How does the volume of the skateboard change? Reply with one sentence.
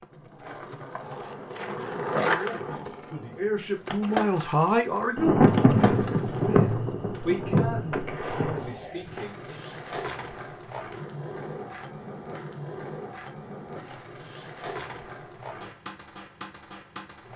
The loudness of the skateboard goes down.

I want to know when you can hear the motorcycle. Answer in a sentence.
You can't hear the motorcycle here.